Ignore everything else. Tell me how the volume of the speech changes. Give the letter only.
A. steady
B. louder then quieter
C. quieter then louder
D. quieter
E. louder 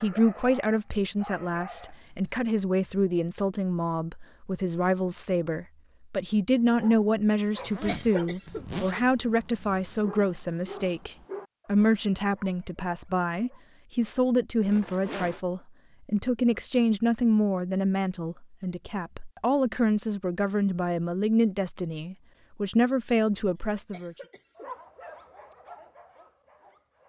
A.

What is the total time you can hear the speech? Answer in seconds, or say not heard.
24 s.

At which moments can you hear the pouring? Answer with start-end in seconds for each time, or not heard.
not heard.